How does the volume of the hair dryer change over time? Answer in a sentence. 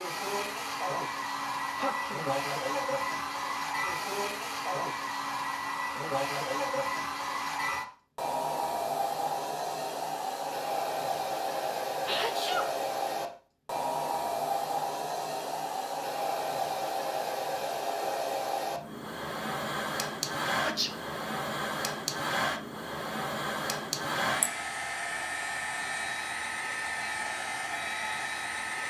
The volume of the hair dryer stays about the same.